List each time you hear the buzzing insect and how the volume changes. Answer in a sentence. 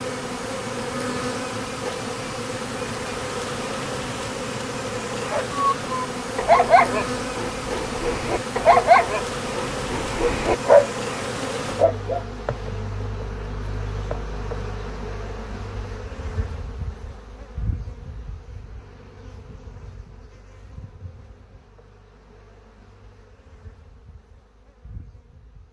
The buzzing insect can be heard from 0.0 to 25.6 s, getting quieter.